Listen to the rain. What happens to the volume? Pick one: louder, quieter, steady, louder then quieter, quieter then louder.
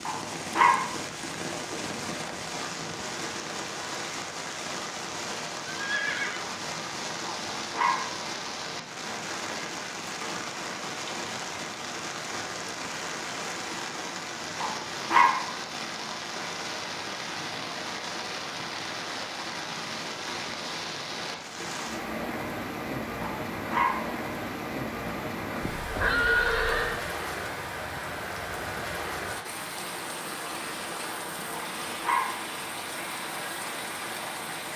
steady.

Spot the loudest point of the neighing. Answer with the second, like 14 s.
26 s.